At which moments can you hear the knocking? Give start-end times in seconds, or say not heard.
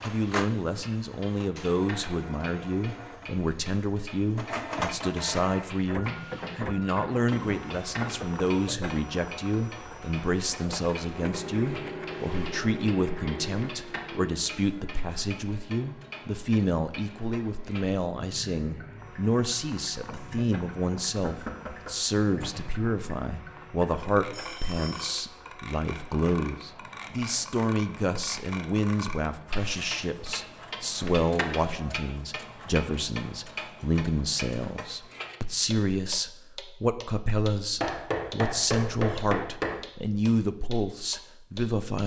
6.0-8.3, 21.2-22.5, 37.8-39.8.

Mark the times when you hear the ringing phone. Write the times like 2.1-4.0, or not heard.
24.3-25.2.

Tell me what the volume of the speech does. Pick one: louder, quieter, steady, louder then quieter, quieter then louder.
steady.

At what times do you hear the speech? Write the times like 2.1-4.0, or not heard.
0.0-42.0.